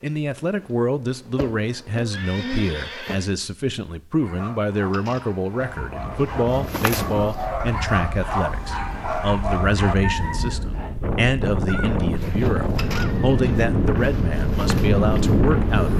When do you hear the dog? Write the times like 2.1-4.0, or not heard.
4.2-10.7.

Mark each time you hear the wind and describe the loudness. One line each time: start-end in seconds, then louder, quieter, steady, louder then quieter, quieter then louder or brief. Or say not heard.
5.7-15.9 louder.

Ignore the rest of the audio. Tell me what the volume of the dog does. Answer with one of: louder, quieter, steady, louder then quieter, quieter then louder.
louder.